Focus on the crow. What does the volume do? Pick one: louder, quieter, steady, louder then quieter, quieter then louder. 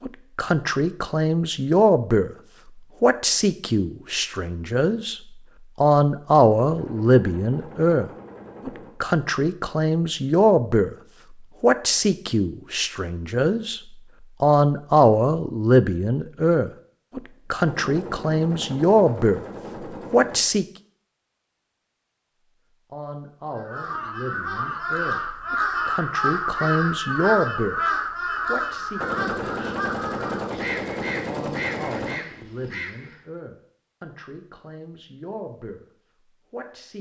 quieter.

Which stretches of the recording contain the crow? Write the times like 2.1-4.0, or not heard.
23.6-33.2.